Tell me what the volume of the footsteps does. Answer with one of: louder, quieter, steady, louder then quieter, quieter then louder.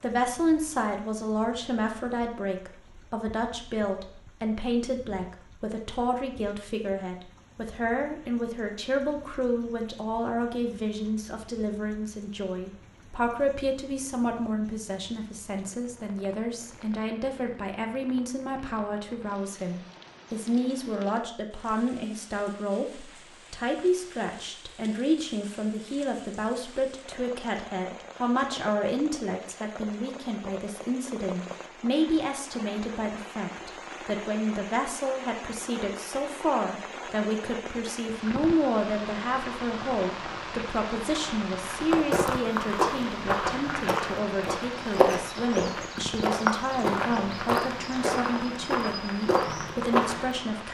steady.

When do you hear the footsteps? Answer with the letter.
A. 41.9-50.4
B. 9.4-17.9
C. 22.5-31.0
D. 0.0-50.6
A.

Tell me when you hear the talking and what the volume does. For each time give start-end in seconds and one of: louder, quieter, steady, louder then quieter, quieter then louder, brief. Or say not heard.
0.0-50.6 steady.